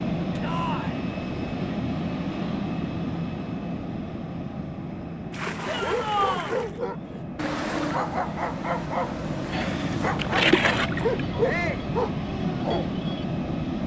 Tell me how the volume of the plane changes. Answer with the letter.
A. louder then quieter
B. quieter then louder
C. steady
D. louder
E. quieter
B.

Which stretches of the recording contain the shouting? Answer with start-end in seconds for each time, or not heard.
0.4-1.0, 5.7-6.5, 11.4-11.9.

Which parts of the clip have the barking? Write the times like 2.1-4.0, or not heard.
5.8-13.2.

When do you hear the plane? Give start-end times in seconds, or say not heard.
0.0-13.8.